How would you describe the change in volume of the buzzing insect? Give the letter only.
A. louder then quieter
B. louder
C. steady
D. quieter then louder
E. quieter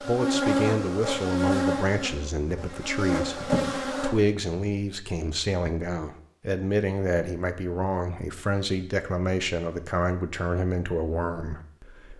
D.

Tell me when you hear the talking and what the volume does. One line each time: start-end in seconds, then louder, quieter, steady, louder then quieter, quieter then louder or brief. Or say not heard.
0.0-12.1 steady.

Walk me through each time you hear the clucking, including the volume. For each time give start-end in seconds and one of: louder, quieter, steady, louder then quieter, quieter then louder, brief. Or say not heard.
not heard.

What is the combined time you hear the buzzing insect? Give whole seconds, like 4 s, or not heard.
4 s.